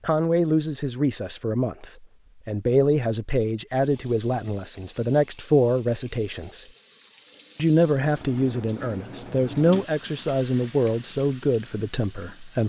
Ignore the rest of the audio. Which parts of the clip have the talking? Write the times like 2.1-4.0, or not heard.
0.0-6.7, 7.5-12.6.